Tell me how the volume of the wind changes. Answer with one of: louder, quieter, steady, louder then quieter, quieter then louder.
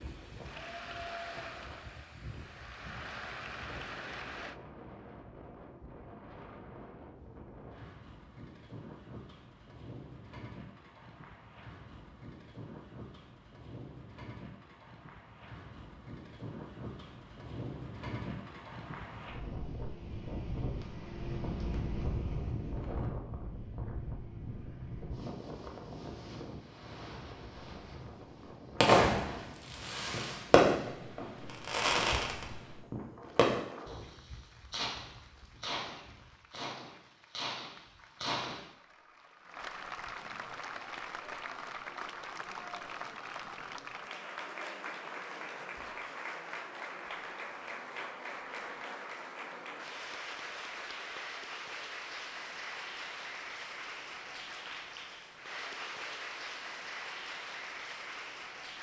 louder then quieter.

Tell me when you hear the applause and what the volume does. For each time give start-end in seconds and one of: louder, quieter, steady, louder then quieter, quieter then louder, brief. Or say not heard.
0.0-4.6 quieter then louder
33.2-58.7 louder.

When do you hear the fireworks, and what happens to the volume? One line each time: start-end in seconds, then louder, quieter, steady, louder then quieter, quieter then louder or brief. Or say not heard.
28.8-38.7 quieter.